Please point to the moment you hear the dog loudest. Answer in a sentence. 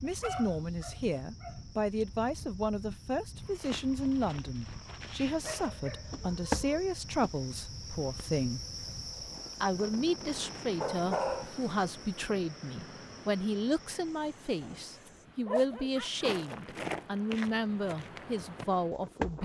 The volume of the dog peaks at 11 seconds.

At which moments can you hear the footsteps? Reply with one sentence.
You can hear the footsteps from 3.5 to 7.4 s and from 16.1 to 19.4 s.